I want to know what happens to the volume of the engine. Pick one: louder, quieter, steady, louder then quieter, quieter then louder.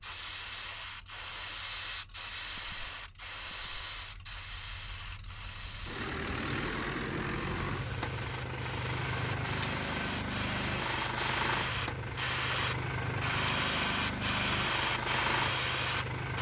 louder.